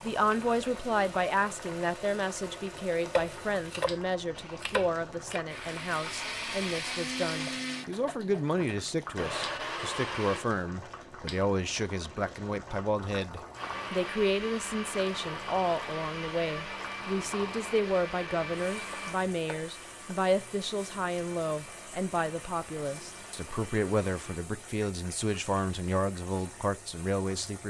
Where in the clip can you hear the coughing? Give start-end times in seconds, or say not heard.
not heard.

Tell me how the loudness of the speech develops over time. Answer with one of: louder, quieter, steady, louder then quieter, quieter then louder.
steady.